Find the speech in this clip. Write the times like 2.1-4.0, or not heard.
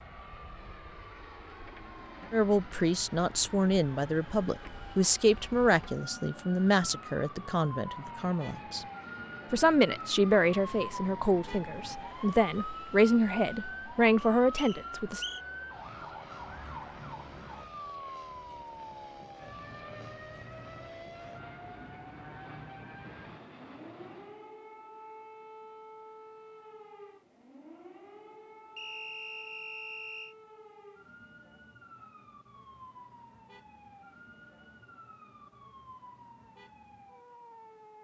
2.3-8.8, 9.5-15.2.